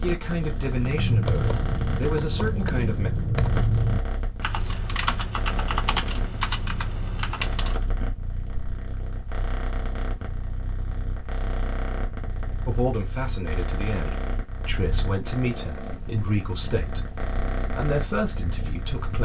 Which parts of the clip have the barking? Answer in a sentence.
The barking can't be heard in this clip.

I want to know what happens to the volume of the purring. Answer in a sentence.
The volume of the purring stays about the same.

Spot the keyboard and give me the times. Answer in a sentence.
The keyboard can be heard from 0.8 to 7.8 s.